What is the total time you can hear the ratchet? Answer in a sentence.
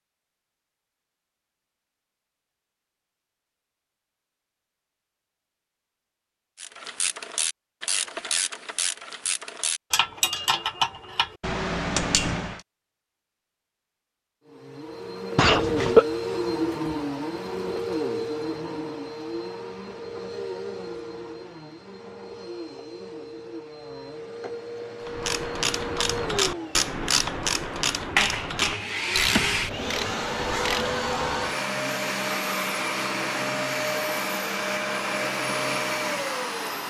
You can hear the ratchet for 12 seconds altogether.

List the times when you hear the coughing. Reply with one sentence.
The coughing can be heard from 15.3 to 16.1 s.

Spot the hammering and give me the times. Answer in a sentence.
You can't hear the hammering here.